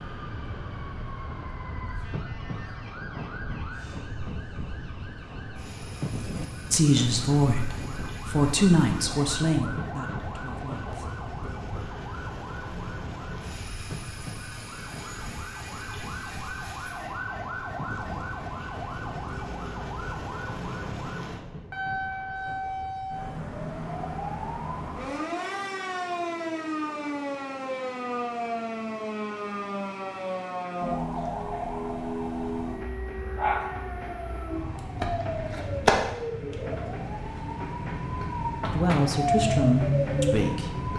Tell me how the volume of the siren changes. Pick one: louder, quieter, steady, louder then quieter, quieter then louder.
louder.